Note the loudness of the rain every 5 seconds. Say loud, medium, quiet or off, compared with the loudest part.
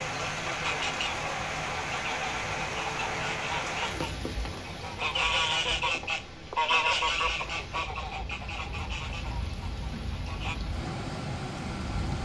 loud, medium, loud.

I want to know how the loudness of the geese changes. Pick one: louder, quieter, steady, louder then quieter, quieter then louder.
louder then quieter.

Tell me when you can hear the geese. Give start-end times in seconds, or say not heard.
0.6-10.6.